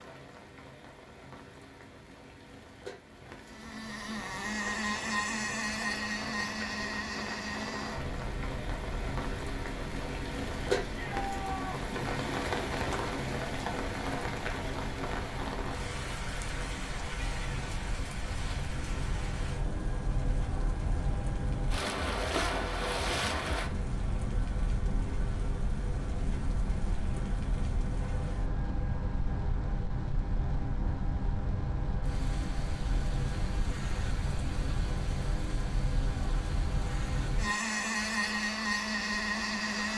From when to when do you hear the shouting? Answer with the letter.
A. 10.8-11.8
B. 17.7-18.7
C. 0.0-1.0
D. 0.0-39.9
A.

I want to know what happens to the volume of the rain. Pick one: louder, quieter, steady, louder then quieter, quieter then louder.
louder then quieter.